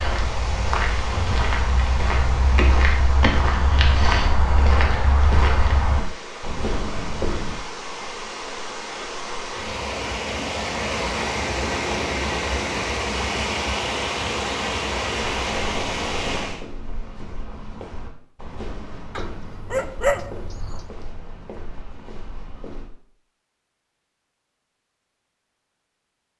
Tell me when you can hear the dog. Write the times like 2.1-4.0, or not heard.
19.1-20.9.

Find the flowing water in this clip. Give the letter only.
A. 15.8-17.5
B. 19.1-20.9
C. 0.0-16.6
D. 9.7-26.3
C.